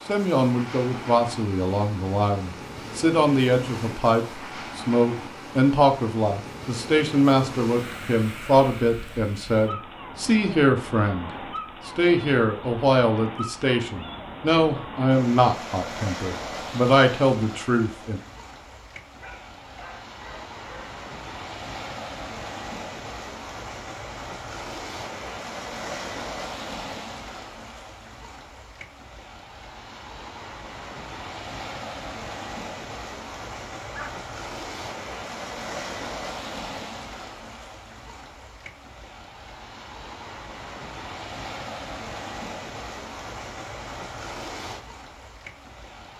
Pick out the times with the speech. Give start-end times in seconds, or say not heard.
0.1-18.2.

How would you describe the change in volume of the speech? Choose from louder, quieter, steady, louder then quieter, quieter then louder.
steady.